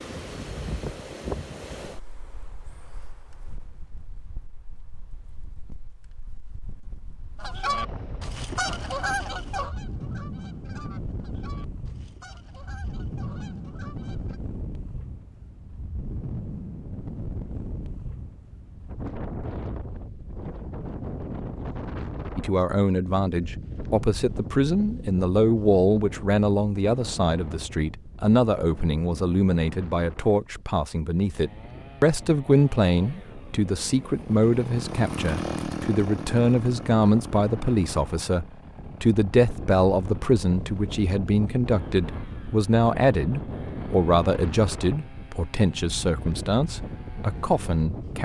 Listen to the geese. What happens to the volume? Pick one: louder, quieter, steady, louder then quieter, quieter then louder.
quieter.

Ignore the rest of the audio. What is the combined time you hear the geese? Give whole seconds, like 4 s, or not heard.
7 s.